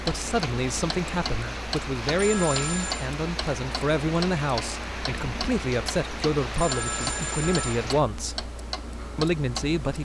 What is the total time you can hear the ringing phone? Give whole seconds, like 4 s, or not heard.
2 s.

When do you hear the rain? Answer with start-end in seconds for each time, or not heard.
0.0-8.0.